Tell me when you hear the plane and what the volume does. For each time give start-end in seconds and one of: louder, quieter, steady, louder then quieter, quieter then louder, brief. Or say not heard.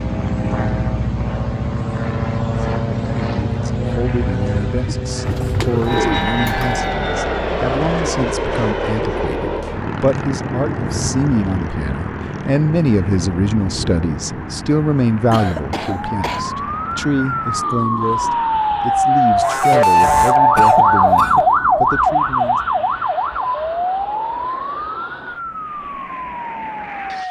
0.0-27.2 quieter.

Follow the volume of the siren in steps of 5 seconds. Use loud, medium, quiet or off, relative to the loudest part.
off, off, off, loud, loud, quiet.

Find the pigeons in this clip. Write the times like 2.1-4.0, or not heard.
5.2-6.8.